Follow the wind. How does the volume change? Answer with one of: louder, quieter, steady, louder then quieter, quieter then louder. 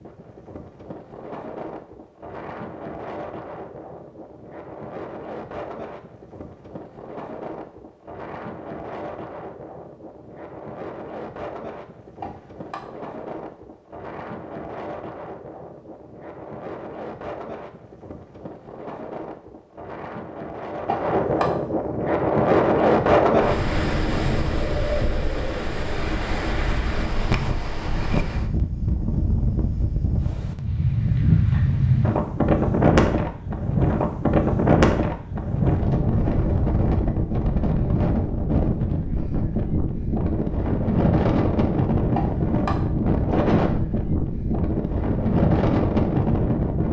louder.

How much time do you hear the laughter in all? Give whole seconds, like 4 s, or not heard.
2 s.